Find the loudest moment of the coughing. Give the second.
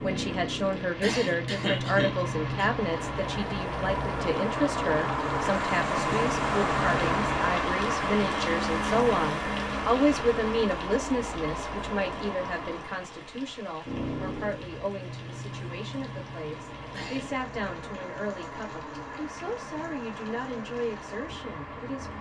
2 s.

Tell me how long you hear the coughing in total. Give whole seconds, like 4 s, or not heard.
2 s.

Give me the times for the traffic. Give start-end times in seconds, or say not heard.
0.0-22.1.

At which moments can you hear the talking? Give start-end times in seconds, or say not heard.
0.0-22.1.